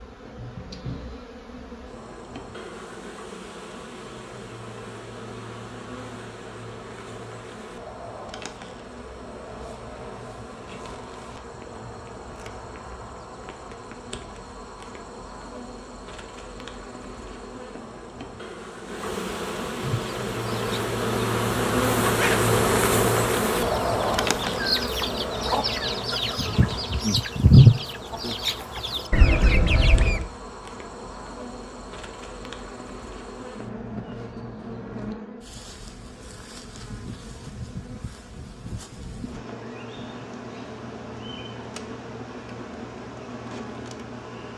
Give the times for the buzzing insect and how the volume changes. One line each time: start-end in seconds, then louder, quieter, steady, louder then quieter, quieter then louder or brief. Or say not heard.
0.0-44.5 louder then quieter.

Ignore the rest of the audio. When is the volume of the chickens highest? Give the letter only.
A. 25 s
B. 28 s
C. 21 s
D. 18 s
B.